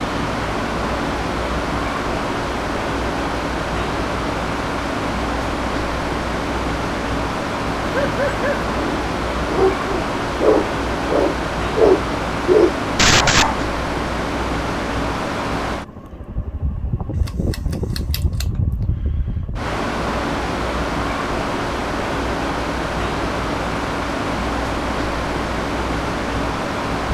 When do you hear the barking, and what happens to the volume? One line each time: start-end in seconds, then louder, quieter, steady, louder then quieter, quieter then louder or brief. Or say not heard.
8.0-13.6 louder.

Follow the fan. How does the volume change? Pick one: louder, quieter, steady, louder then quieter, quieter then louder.
steady.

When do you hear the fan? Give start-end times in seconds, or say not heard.
0.0-27.0.